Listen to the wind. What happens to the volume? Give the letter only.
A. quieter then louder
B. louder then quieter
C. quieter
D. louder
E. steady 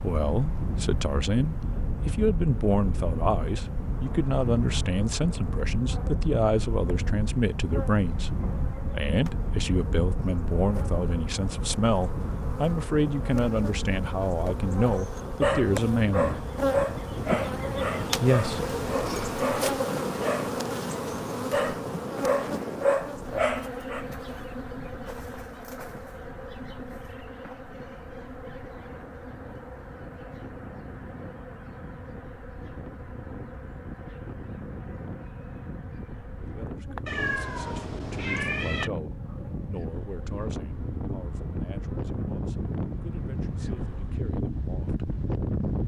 A.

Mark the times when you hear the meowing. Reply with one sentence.
The meowing can be heard from 37.0 to 38.9 s.